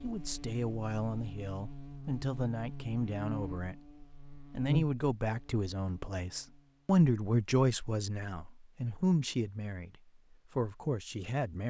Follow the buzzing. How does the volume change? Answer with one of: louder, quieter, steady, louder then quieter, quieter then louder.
louder then quieter.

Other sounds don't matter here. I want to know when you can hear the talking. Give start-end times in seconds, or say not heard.
0.0-3.8, 4.5-11.6.